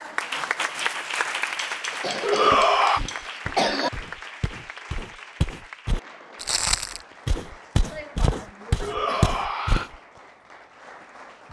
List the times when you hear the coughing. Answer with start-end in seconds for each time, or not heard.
1.9-3.9, 7.8-9.3.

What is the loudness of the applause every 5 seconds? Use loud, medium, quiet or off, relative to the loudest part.
loud, quiet, quiet.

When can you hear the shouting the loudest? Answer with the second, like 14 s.
3 s.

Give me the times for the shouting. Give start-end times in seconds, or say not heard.
2.2-3.0, 8.8-9.9.